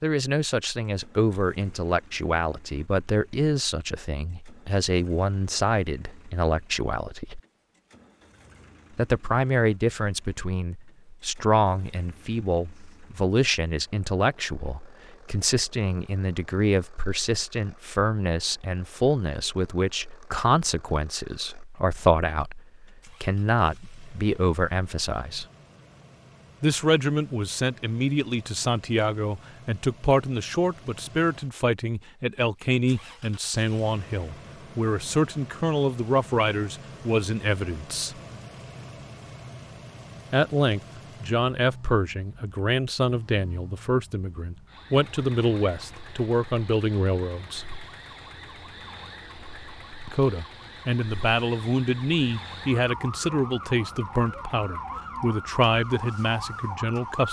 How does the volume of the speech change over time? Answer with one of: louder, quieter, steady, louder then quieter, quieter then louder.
steady.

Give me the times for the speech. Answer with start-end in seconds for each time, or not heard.
0.0-7.4, 8.9-25.4, 26.6-38.1, 40.3-47.6, 50.0-57.2.